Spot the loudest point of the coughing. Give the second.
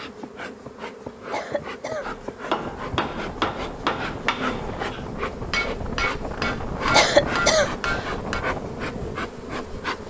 7 s.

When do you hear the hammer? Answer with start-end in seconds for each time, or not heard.
2.0-8.4.